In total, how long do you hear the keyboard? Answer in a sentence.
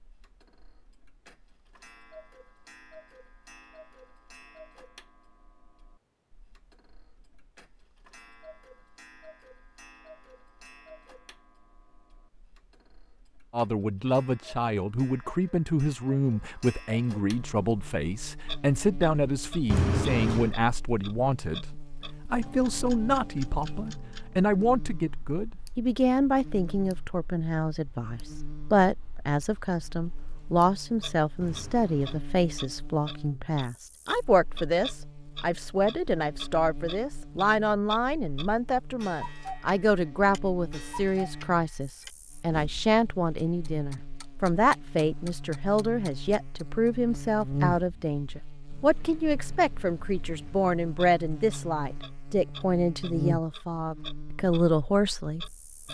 You can't hear the keyboard here.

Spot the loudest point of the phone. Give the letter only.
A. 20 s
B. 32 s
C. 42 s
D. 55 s
A.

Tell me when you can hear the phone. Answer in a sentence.
The phone can be heard from 19.7 to 20.6 s and from 31.4 to 32.2 s.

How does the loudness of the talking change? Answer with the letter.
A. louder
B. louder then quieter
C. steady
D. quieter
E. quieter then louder
C.